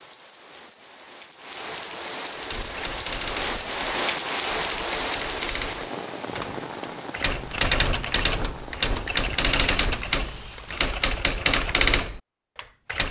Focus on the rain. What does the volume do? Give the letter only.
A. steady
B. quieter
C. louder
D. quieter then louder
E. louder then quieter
E.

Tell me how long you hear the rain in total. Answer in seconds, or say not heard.
11 s.